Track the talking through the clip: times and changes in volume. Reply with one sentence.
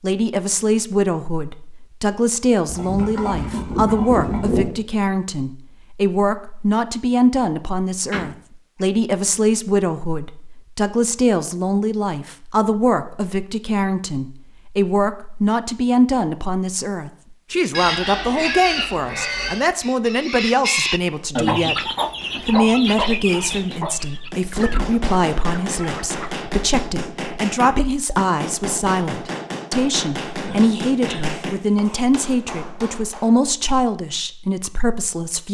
You can hear the talking from 0.0 to 35.4 s, at a steady volume.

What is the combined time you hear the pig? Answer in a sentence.
You can hear the pig for 6 seconds altogether.